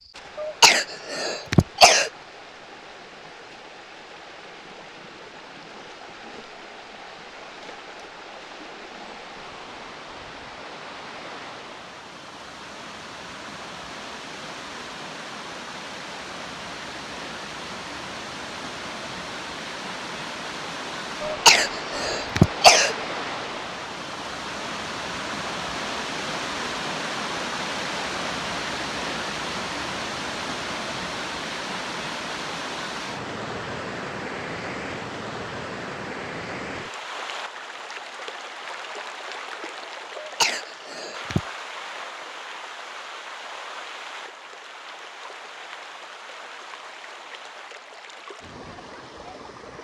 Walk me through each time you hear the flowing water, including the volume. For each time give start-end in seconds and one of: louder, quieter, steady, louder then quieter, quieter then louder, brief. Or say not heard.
0.0-49.8 louder then quieter.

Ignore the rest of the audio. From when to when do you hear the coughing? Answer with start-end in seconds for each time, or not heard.
0.3-2.1, 21.2-22.9, 40.2-41.4.